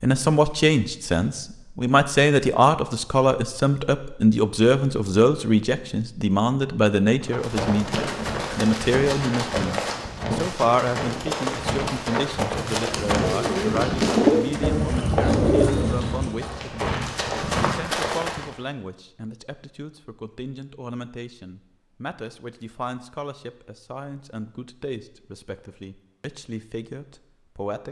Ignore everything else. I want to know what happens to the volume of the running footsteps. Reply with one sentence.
The loudness of the running footsteps stays about the same.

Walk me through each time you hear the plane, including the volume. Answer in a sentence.
You can't hear the plane here.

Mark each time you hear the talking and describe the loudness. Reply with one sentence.
The talking can be heard from 0.0 to 27.8 s, getting quieter.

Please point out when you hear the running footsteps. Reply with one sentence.
The running footsteps can be heard from 7.2 to 18.6 s.